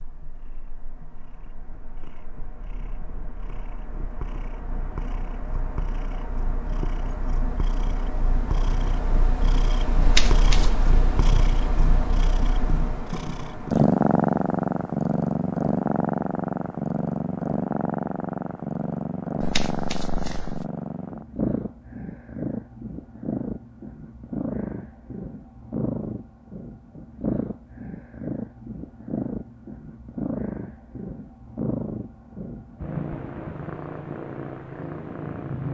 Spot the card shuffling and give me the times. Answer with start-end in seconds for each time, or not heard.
10.0-10.9, 19.4-20.6.